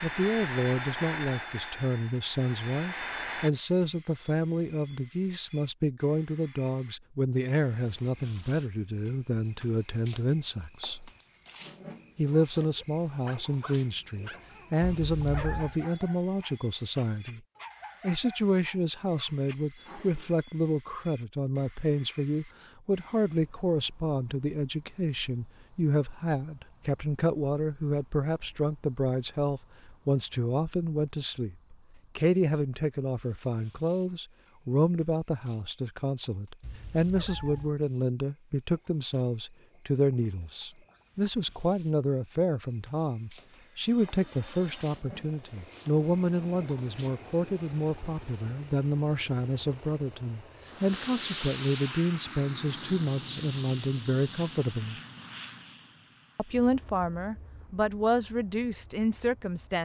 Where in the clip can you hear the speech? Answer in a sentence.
The speech can be heard from 0.0 to 11.1 s, from 12.2 to 17.4 s, from 18.0 to 55.0 s and from 56.4 to 59.8 s.